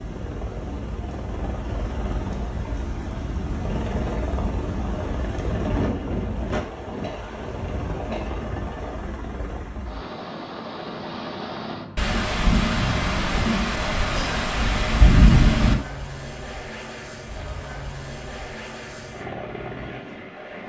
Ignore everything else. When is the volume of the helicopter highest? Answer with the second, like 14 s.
6 s.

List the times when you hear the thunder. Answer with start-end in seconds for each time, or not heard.
11.9-15.8.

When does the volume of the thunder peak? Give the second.
15 s.